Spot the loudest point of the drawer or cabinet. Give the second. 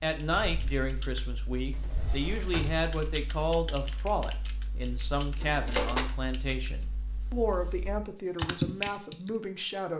6 s.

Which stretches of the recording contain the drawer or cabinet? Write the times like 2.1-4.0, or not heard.
1.7-2.9, 5.4-6.0.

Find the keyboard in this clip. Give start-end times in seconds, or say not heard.
0.1-9.3.